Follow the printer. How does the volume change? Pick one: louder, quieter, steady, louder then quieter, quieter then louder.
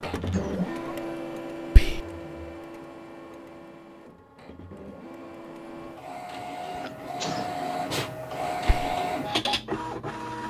quieter then louder.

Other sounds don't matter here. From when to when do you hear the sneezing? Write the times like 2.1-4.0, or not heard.
0.3-0.8, 6.8-7.5.